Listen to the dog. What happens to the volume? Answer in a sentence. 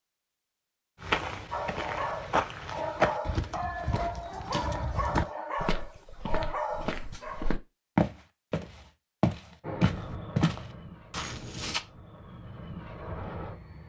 The loudness of the dog stays about the same.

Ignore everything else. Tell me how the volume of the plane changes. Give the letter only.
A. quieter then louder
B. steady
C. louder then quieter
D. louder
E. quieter
A.